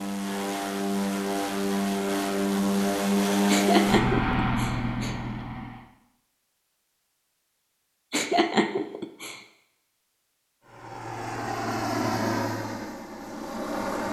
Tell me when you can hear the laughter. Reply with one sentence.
The laughter can be heard from 3.5 to 5.2 s and from 8.1 to 9.4 s.